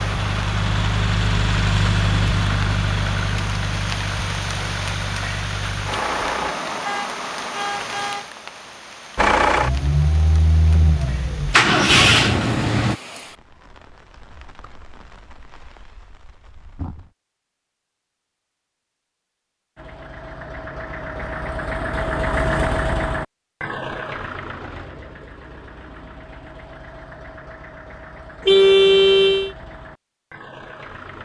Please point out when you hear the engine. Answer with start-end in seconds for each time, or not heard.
0.0-6.5, 9.2-12.9, 19.8-31.1.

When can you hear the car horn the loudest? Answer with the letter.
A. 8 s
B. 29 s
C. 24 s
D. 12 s
B.